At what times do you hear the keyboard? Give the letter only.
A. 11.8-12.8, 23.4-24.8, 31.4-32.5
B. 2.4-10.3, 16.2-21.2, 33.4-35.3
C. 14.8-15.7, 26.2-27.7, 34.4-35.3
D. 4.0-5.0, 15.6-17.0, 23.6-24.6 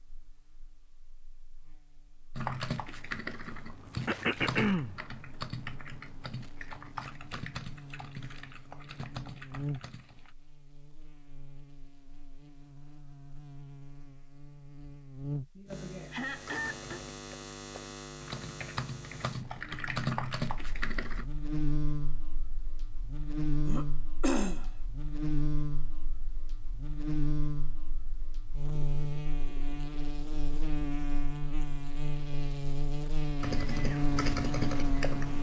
B.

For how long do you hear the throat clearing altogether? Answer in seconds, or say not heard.
3 s.